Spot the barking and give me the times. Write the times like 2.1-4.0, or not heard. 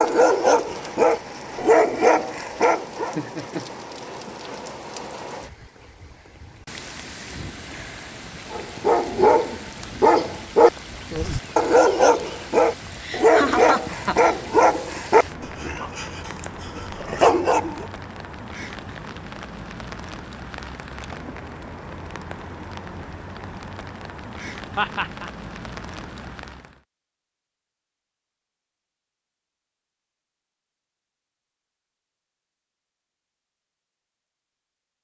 0.0-3.1, 8.5-17.9.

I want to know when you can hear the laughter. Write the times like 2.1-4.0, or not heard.
3.0-3.7, 12.9-14.3, 24.8-25.3.